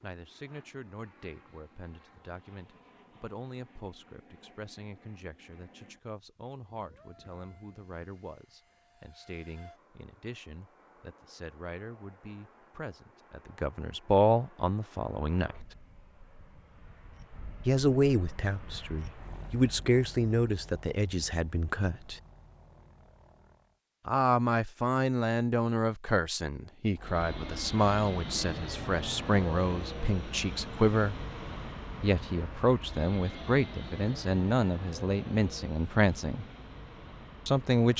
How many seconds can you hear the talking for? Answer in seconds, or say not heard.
32 s.